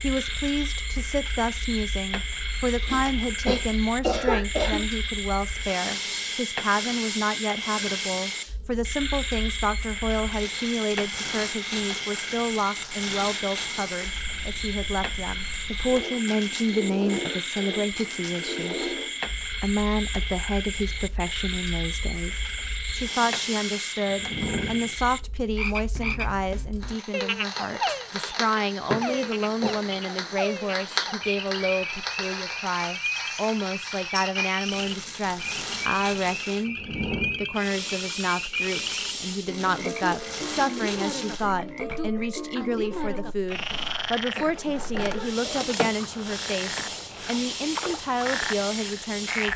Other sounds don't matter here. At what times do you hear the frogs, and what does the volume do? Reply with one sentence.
You can hear the frogs from 0.0 to 49.5 s, at a steady volume.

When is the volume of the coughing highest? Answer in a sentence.
The loudest moment of the coughing is at 4 seconds.